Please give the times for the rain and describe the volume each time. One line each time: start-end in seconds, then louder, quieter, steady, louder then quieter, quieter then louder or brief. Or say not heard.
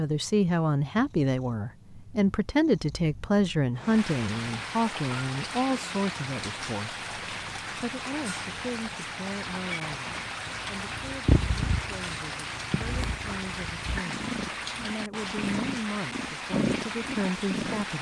3.8-17.9 steady.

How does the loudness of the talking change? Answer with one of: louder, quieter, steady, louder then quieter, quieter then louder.
quieter then louder.